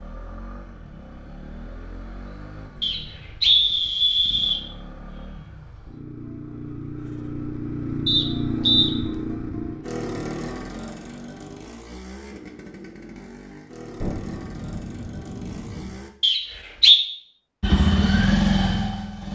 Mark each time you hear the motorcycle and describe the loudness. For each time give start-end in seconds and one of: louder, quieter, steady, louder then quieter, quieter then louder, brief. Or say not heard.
0.0-16.1 louder then quieter
17.6-19.3 brief.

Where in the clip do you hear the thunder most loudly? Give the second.
14 s.